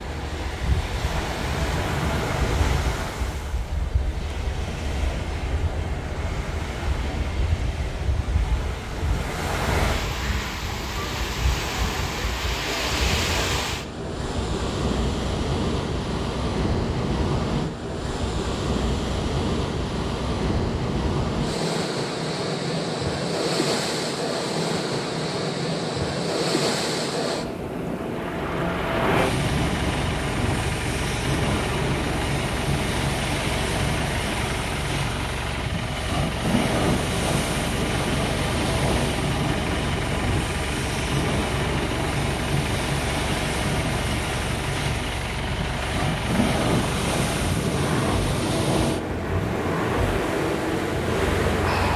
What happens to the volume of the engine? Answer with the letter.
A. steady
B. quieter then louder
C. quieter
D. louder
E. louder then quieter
A.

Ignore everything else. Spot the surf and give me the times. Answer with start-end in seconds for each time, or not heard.
0.0-51.9.